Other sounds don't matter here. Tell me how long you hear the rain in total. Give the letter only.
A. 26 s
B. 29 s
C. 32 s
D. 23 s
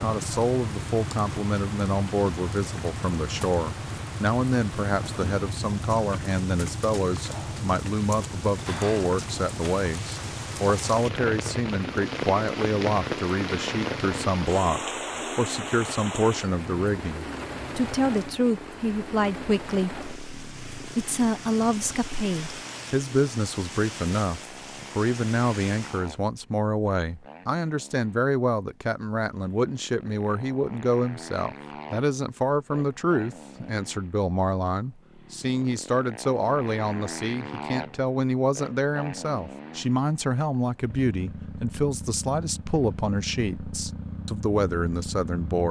A.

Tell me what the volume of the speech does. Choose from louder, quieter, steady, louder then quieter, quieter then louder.
steady.